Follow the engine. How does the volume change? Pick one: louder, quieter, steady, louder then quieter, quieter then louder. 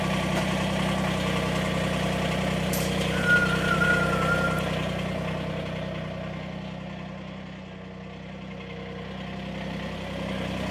quieter.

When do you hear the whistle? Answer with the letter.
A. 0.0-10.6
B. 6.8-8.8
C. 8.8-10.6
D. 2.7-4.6
D.